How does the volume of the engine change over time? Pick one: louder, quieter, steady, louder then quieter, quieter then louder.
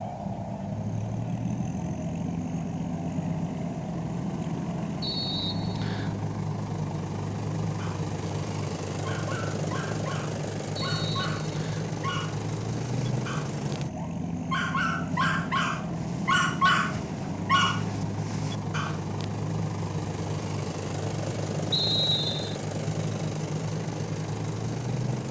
steady.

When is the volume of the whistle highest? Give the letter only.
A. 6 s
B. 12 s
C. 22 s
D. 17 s
C.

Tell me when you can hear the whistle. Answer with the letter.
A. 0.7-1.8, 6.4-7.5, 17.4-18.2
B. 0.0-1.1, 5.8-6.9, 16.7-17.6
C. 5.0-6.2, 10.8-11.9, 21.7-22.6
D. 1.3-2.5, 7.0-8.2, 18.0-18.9
C.